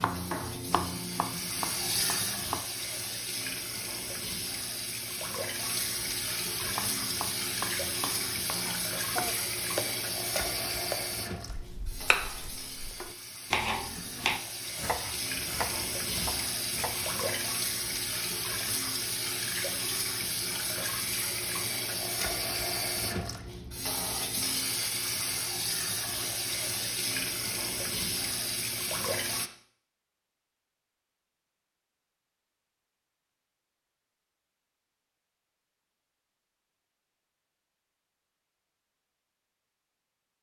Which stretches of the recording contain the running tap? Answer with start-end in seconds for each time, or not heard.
0.0-29.5.